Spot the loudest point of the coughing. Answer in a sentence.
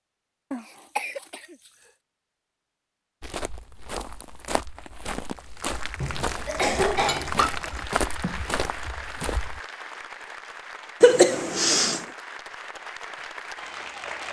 The loudest moment of the coughing is at 11 seconds.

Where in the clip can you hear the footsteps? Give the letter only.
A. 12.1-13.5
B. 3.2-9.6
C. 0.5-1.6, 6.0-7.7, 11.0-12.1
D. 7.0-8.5
B.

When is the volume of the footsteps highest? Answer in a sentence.
The volume of the footsteps peaks at 8 seconds.